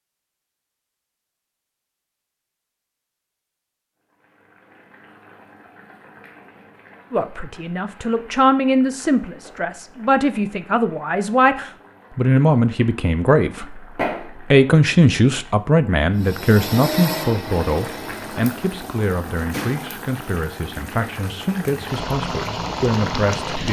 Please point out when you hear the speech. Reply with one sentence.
The speech can be heard from 7.1 to 23.6 s.